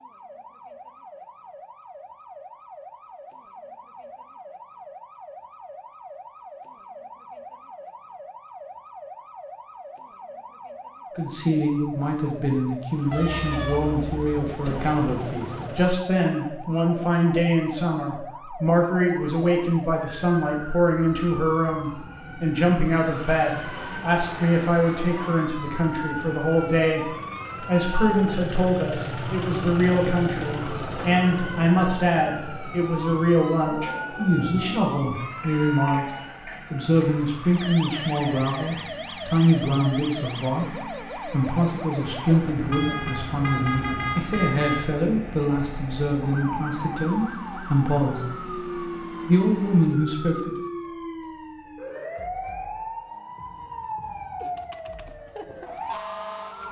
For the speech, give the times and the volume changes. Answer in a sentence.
You can hear the speech from 11.2 to 36.0 s, at a steady volume; from 36.7 to 48.5 s, at a steady volume; and briefly from 49.2 to 50.6 s.